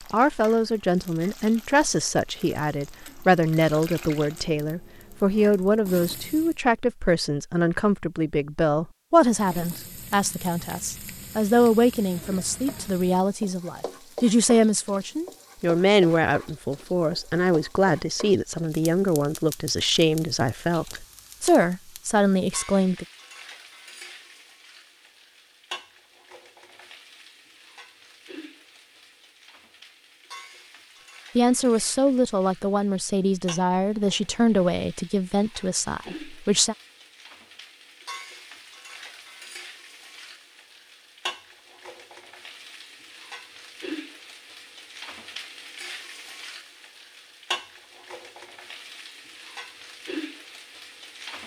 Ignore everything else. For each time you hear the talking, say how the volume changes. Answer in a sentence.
You can hear the talking from 0.1 to 23.1 s, at a steady volume; and from 31.4 to 36.8 s, getting quieter.